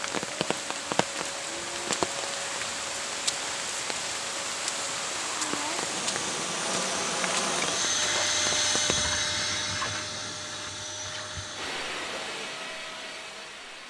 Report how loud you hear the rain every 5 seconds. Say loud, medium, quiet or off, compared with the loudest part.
loud, loud, off.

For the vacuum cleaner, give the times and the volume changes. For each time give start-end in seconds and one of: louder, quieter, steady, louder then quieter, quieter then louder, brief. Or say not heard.
0.0-13.8 louder then quieter.